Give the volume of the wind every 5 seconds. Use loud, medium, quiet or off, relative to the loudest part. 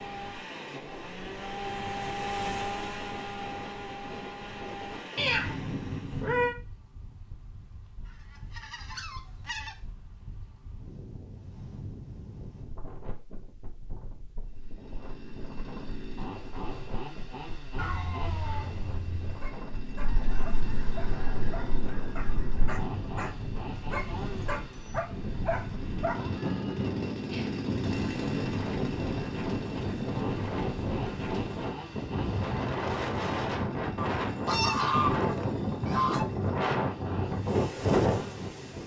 quiet, quiet, quiet, quiet, medium, medium, loud, loud.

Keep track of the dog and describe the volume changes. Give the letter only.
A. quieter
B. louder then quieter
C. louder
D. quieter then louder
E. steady
C.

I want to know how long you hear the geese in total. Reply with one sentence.
The geese can be heard for 7 seconds in total.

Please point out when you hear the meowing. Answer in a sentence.
You can hear the meowing from 5.2 to 6.5 s, from 17.8 to 19.4 s and from 26.1 to 27.6 s.